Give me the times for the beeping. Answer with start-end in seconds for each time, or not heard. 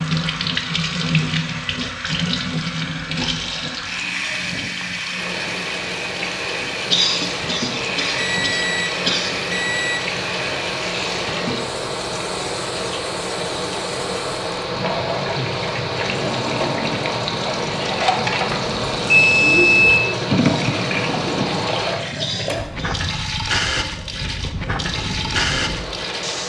8.2-10.0, 18.4-20.0.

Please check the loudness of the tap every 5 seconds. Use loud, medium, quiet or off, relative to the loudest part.
loud, loud, medium, loud, loud, loud.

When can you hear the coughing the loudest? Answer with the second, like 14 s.
7 s.